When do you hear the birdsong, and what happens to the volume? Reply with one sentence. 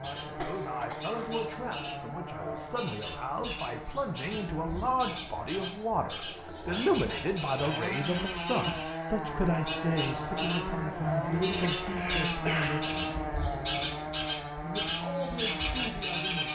The birdsong can be heard from 0.0 to 16.5 s, getting louder.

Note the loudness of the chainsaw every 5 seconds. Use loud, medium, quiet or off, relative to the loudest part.
medium, loud, loud, loud.